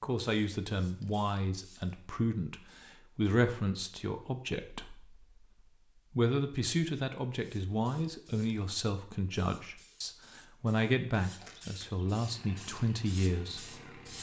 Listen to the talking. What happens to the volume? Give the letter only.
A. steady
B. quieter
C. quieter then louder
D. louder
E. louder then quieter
A.